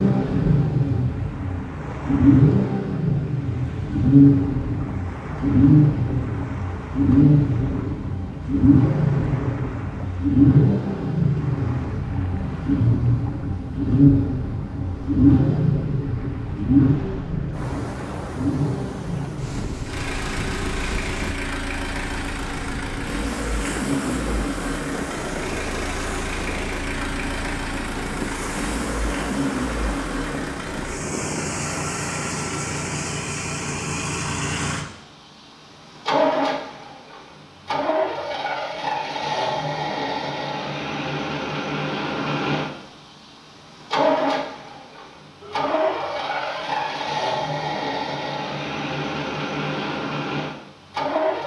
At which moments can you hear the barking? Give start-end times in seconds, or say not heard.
not heard.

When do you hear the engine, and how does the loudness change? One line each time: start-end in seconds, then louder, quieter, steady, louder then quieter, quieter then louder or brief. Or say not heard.
0.0-51.4 quieter.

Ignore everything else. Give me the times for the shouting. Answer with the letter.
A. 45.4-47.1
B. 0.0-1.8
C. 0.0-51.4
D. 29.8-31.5
A.